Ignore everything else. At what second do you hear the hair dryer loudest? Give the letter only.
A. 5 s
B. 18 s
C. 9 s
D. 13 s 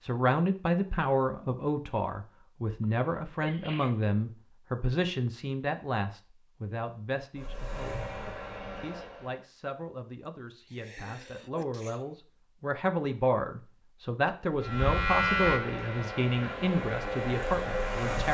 B.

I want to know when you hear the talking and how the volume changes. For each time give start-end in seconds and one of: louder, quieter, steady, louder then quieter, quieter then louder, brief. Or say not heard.
0.0-8.0 quieter
8.8-18.3 louder.